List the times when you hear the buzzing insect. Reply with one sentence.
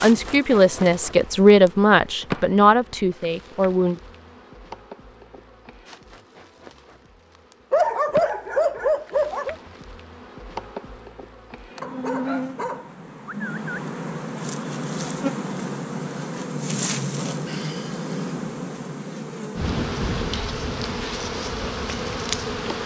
You can hear the buzzing insect from 0.0 to 22.8 s.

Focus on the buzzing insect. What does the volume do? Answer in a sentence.
The loudness of the buzzing insect goes down, then up.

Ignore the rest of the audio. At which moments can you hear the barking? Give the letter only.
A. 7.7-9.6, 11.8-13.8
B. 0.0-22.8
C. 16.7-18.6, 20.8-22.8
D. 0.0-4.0
A.